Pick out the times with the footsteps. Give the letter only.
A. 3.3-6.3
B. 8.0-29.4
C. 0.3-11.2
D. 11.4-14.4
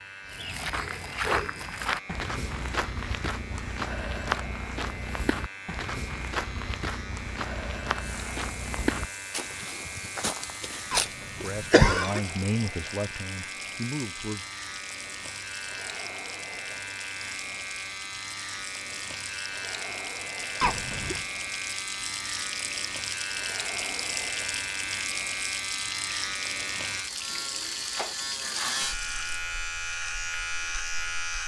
C.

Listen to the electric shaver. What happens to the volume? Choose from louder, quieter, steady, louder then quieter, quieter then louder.
louder.